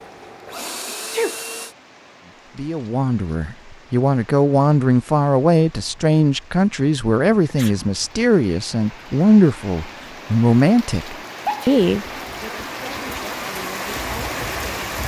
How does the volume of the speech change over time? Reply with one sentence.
The volume of the speech goes down.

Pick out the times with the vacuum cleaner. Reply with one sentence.
You can hear the vacuum cleaner from 0.0 to 1.8 s.